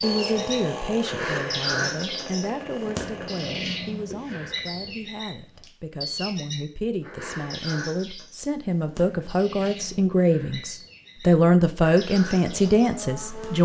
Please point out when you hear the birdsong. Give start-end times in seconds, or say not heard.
0.0-13.6.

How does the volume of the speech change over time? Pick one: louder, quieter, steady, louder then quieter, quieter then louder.
quieter then louder.